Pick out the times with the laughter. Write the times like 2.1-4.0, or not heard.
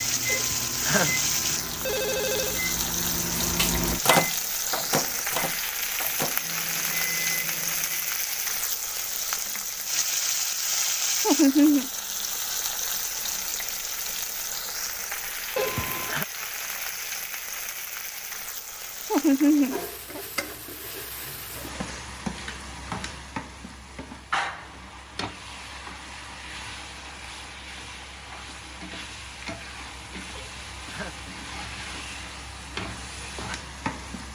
11.2-11.9, 19.1-20.2.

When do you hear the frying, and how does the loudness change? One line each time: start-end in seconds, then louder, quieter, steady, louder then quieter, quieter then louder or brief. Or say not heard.
0.0-34.2 quieter.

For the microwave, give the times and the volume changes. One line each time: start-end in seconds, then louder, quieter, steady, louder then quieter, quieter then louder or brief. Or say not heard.
0.0-8.2 louder then quieter.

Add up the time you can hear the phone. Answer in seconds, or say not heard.
4 s.